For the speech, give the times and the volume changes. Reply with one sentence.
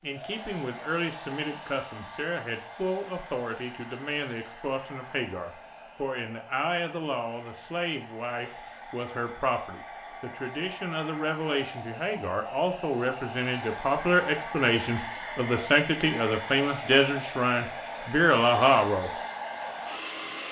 You can hear the speech from 0.0 to 19.1 s, getting louder.